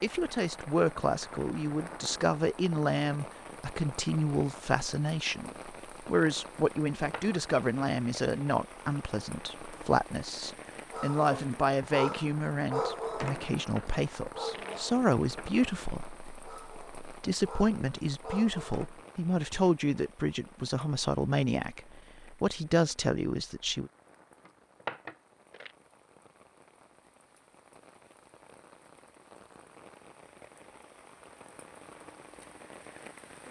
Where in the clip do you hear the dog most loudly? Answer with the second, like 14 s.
13 s.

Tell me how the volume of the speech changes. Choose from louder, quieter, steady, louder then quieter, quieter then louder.
steady.